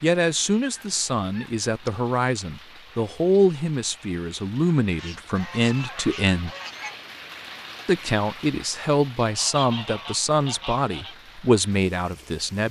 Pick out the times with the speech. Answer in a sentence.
You can hear the speech from 0.0 to 6.5 s and from 7.8 to 12.6 s.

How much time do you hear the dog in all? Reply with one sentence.
The dog can't be heard in this clip.